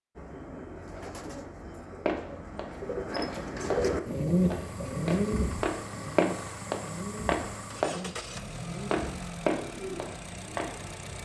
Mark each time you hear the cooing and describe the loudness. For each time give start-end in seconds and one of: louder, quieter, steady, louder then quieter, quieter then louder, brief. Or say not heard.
0.1-10.2 louder then quieter.